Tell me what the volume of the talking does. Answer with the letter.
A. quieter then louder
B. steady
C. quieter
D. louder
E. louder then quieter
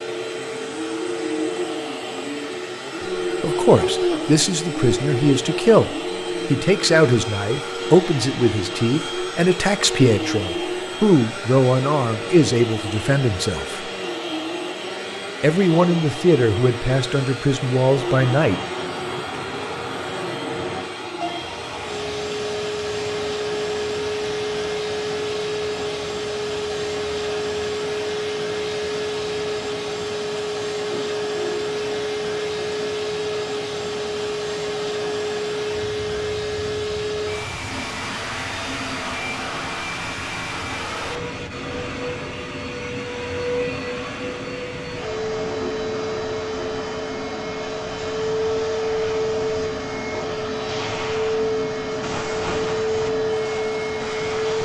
B.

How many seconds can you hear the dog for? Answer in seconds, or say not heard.
not heard.